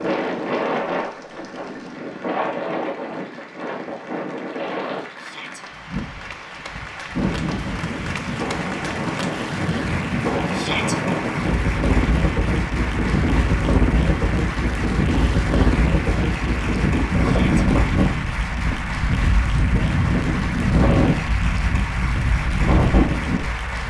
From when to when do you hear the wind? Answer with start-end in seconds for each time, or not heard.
0.0-23.8.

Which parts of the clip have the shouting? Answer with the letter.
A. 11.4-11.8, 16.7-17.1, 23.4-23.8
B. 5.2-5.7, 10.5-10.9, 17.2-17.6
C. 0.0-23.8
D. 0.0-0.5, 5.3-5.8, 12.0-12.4
B.